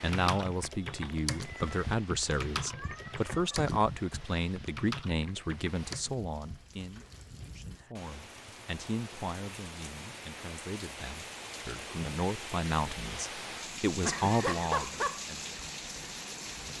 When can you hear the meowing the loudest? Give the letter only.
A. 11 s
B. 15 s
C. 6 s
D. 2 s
B.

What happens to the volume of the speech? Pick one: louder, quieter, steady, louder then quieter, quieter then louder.
quieter then louder.